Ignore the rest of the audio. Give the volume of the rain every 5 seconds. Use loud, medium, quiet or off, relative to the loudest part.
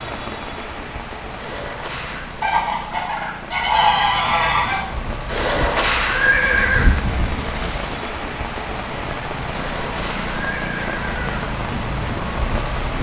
medium, loud, loud.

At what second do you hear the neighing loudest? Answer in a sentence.
The volume of the neighing peaks at 6 seconds.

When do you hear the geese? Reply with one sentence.
The geese can be heard from 2.4 to 4.8 s.